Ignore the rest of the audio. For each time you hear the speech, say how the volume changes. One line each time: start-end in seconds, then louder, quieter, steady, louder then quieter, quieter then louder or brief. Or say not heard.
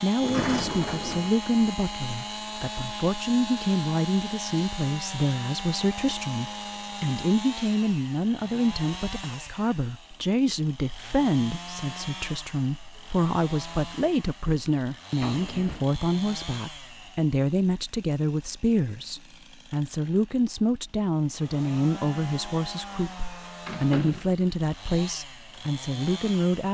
0.0-26.6 steady.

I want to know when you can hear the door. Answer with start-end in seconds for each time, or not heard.
0.2-1.4, 15.2-15.9, 23.6-24.4.